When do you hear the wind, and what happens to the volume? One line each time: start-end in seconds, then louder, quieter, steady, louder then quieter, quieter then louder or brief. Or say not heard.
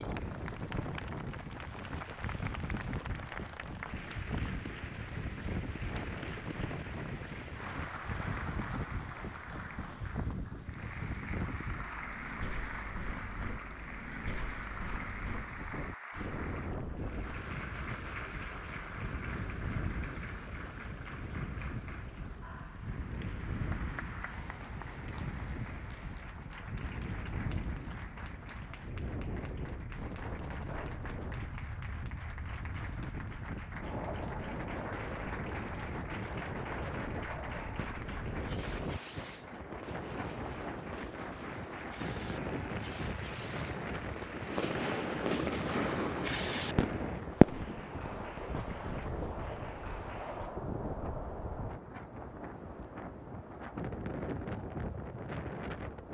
0.0-56.1 steady.